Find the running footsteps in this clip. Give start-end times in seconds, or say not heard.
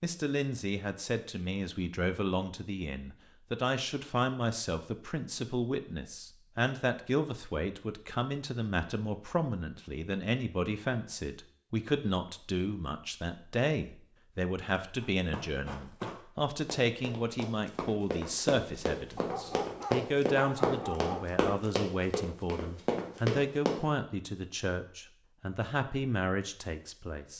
15.0-23.8.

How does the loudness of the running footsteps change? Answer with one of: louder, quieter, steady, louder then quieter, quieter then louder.
louder.